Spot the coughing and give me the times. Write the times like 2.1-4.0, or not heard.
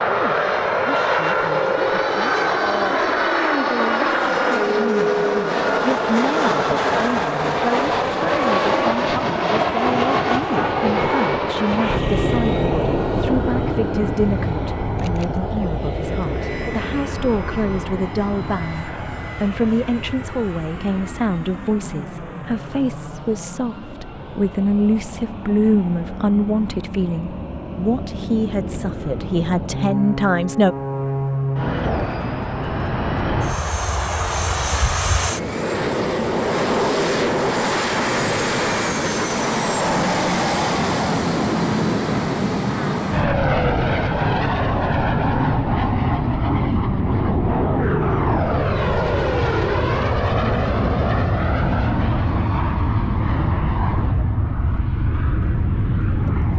not heard.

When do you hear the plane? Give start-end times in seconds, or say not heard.
0.0-56.5.